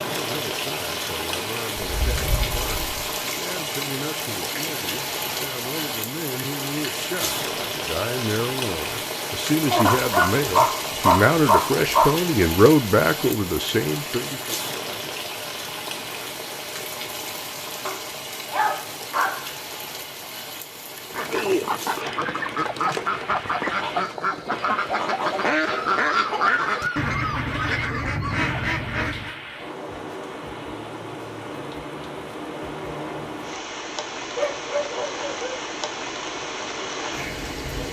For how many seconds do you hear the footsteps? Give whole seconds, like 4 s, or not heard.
not heard.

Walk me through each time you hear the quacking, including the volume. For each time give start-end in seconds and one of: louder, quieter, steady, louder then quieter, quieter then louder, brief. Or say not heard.
21.1-29.4 steady.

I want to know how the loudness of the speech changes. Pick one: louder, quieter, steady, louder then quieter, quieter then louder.
louder.